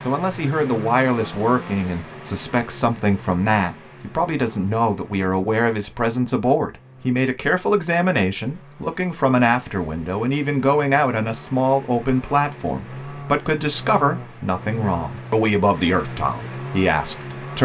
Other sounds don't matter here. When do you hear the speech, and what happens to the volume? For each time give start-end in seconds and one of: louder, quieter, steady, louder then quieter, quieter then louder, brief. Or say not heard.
0.1-17.5 steady.